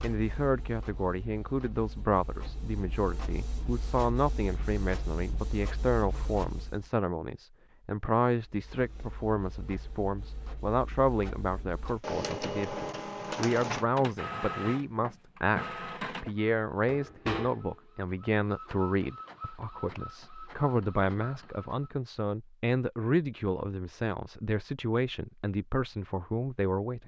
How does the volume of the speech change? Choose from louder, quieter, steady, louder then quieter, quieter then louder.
steady.